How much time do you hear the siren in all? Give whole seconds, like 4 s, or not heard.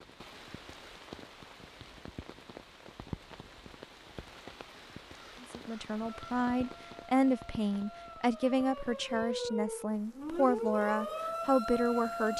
6 s.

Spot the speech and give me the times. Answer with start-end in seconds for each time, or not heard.
5.4-12.3.